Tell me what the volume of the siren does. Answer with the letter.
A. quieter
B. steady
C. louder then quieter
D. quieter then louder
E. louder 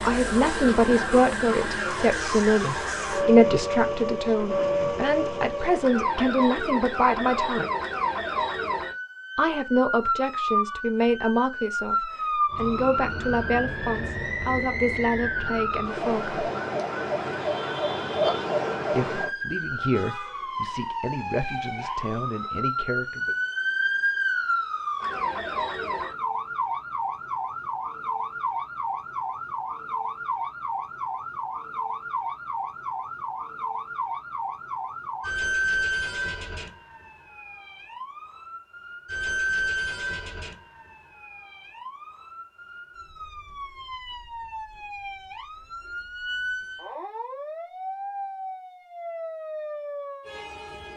A.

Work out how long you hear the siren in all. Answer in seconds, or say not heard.
51 s.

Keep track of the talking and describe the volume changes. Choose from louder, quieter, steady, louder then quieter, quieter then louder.
quieter.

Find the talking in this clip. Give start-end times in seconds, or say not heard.
0.0-7.7, 9.3-16.4, 18.9-23.4.